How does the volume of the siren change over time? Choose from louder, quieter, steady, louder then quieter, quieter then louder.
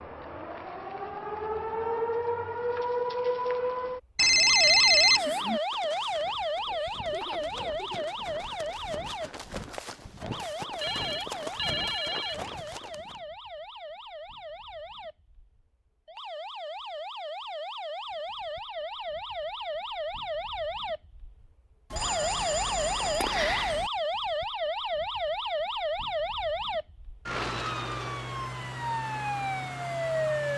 quieter then louder.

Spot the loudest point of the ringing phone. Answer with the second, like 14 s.
5 s.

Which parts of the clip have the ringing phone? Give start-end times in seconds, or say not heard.
4.2-5.6, 10.8-12.8, 21.9-23.9.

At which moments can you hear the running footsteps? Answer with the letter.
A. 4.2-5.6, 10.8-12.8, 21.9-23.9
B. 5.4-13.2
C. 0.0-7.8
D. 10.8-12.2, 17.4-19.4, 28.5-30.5
B.